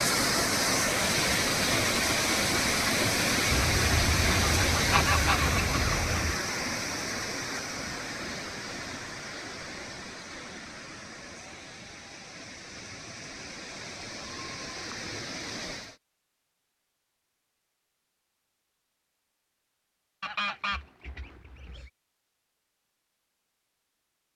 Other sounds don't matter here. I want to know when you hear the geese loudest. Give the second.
5 s.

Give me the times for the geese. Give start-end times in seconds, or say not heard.
3.5-6.4, 20.2-21.9.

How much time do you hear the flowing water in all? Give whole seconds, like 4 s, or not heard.
16 s.